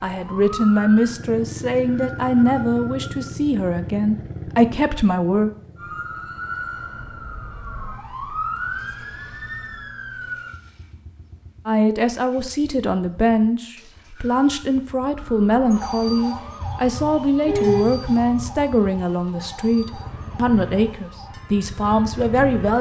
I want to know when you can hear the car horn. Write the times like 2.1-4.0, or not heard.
16.6-18.6.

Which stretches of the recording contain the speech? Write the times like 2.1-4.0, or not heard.
0.0-5.5, 11.7-22.7.